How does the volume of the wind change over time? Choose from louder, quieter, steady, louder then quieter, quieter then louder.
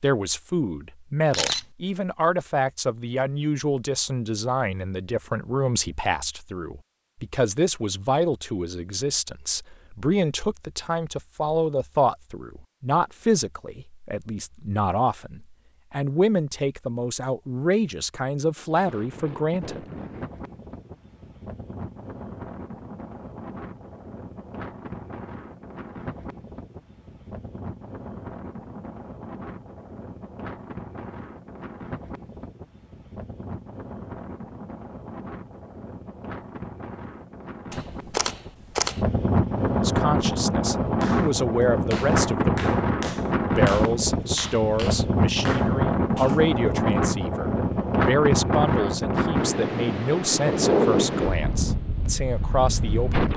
louder.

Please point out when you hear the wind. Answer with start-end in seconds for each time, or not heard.
18.6-53.3.